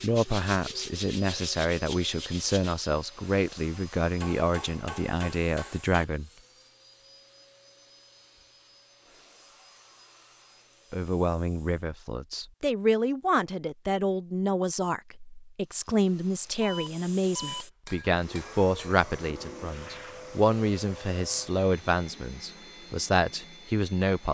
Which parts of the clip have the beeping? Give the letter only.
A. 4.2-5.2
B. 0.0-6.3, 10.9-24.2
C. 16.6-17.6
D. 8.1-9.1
C.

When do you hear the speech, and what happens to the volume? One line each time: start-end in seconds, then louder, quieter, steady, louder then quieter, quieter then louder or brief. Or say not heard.
0.0-6.3 steady
10.9-24.2 steady.